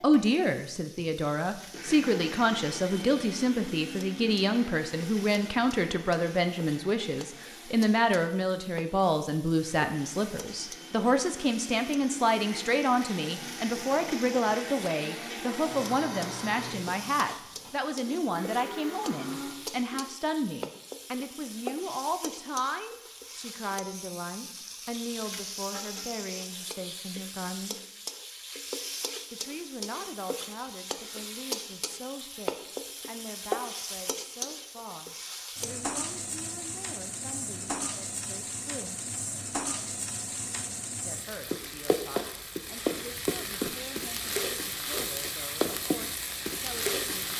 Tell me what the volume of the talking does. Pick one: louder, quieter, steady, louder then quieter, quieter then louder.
quieter.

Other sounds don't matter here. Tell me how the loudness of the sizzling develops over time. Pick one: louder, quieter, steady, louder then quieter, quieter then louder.
louder.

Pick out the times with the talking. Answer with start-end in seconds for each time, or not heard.
0.0-27.8, 29.3-39.0, 41.0-47.3.